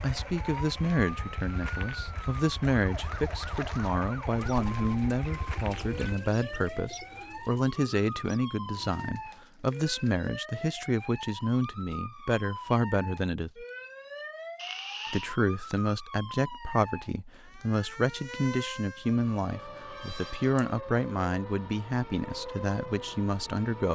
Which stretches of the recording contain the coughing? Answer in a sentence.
You can hear the coughing from 14.6 to 15.3 s.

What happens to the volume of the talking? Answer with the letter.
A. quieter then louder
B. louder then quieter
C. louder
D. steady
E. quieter
D.